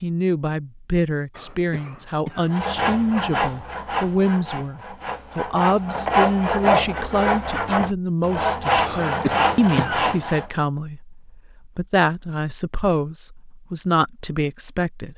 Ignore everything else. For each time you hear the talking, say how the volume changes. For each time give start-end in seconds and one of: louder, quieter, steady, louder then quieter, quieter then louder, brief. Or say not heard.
0.0-15.1 steady.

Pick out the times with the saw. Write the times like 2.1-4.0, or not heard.
2.5-10.4.